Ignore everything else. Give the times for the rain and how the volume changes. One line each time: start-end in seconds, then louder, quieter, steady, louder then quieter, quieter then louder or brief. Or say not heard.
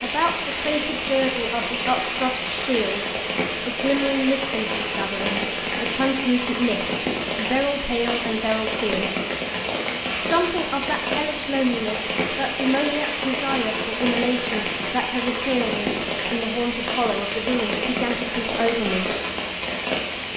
0.0-20.3 steady.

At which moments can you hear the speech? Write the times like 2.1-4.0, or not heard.
0.0-9.1, 10.2-19.1.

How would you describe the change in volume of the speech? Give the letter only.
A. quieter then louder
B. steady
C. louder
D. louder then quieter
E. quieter
B.